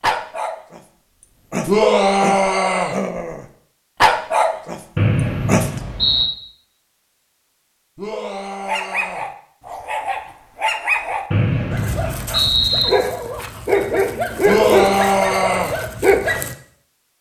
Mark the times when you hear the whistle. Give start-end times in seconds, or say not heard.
5.0-6.3, 11.3-12.9.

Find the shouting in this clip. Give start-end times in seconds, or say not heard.
1.6-3.0, 8.0-9.2, 14.4-15.8.